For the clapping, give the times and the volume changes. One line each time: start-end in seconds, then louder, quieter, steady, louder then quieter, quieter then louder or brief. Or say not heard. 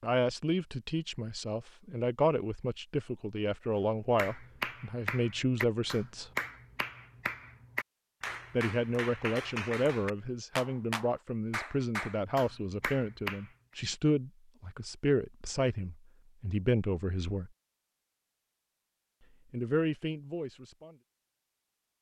4.2-13.5 steady.